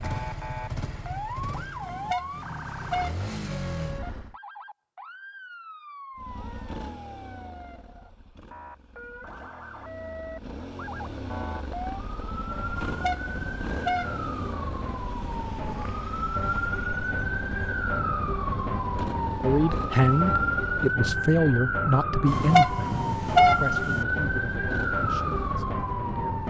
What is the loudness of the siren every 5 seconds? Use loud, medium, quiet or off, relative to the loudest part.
medium, quiet, medium, loud, loud, loud.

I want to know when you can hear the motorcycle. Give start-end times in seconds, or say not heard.
0.0-4.3, 6.2-21.0, 23.9-26.4.